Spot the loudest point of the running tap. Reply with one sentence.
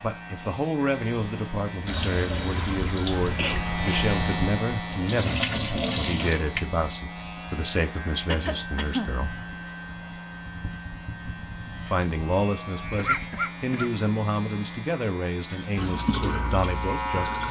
The volume of the running tap peaks at 6 seconds.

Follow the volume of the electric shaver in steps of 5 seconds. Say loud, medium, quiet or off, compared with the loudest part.
loud, medium, medium, loud.